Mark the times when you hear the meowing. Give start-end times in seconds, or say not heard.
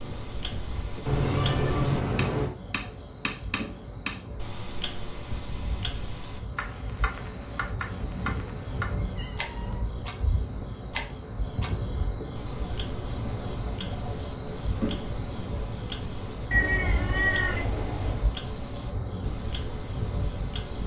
1.1-2.5, 8.1-9.8, 16.5-18.3.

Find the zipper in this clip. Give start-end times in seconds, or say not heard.
not heard.